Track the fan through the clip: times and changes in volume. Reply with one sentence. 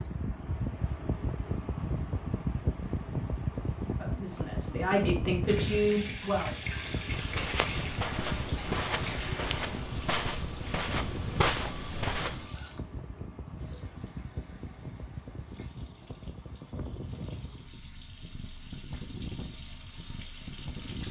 You can hear the fan from 0.0 to 21.0 s, getting quieter.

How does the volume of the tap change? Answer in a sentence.
The loudness of the tap goes down, then up.